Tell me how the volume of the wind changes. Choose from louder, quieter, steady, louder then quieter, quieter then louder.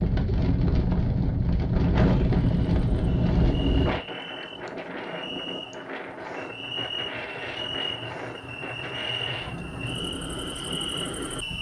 quieter.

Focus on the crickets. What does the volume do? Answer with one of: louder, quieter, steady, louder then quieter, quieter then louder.
louder.